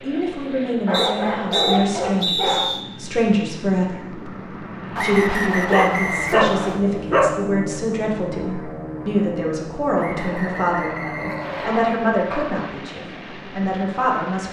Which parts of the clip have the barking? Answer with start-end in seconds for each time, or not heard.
0.8-2.7, 5.7-7.3, 10.3-12.7.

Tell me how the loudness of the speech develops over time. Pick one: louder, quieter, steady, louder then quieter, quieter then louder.
steady.